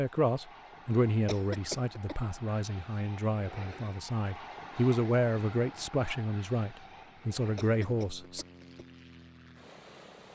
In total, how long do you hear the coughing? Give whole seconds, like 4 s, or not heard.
2 s.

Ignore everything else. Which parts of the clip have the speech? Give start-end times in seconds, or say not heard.
0.0-8.4.